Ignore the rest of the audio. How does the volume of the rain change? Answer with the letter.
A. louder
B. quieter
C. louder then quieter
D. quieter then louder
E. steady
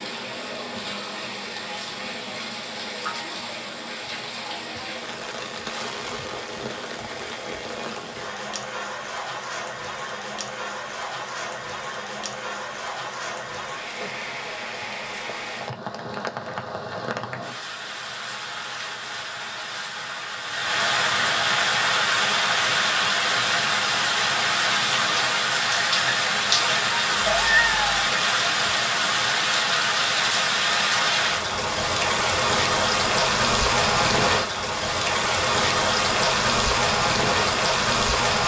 A.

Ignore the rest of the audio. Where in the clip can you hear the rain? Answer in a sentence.
You can hear the rain from 0.0 to 38.4 s.